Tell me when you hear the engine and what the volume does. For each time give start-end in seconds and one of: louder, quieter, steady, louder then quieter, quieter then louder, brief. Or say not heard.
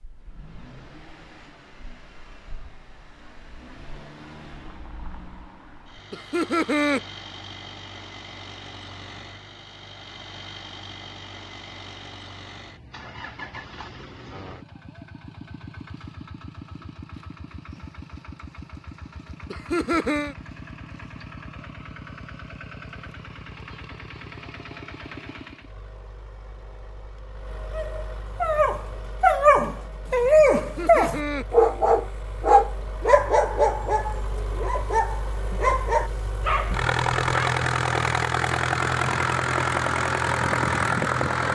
0.0-41.4 louder.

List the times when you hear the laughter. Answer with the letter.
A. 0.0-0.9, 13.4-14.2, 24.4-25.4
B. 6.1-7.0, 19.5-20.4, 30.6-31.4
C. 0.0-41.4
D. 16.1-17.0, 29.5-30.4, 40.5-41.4
B.